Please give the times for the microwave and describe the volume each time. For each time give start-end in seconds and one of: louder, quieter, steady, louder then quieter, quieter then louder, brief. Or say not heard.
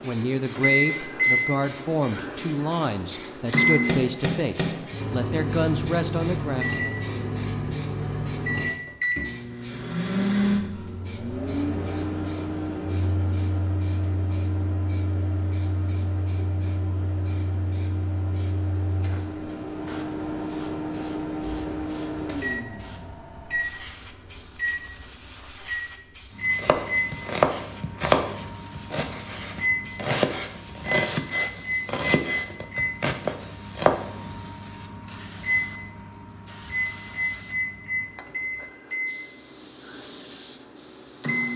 0.0-41.5 quieter.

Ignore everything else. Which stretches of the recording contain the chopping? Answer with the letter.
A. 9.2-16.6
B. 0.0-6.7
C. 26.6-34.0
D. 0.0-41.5
C.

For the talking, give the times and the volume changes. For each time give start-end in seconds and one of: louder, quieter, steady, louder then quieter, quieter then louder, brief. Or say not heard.
0.0-6.7 steady.